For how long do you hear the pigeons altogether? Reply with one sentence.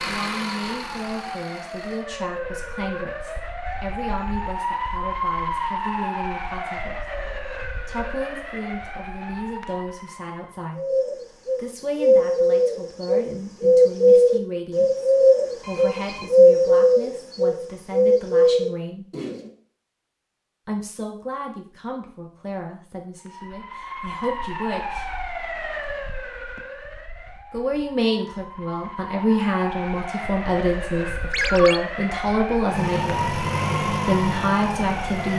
You can hear the pigeons for 9 seconds altogether.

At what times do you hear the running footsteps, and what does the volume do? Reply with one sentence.
The running footsteps can't be heard in this clip.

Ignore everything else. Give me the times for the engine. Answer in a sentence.
The engine can be heard from 0.0 to 2.0 s and from 32.7 to 35.3 s.